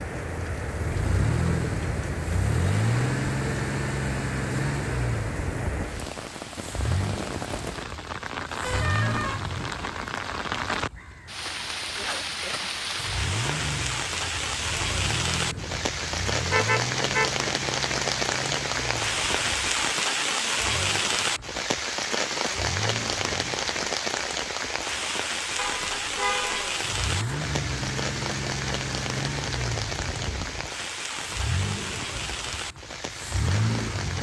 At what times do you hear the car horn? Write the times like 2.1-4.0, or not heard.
8.6-9.4, 16.4-17.3, 25.6-26.8.